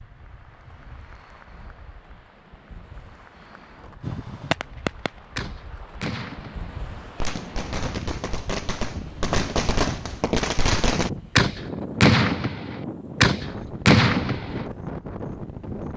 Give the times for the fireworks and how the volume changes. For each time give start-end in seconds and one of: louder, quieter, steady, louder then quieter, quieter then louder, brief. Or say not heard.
4.0-14.7 quieter then louder.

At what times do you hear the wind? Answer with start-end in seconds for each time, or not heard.
0.0-15.9.